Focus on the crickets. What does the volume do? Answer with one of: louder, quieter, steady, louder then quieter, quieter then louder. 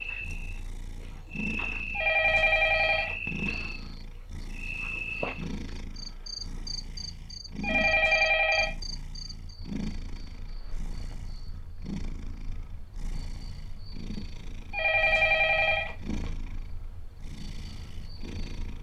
quieter.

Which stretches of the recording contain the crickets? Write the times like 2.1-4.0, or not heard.
0.0-18.7.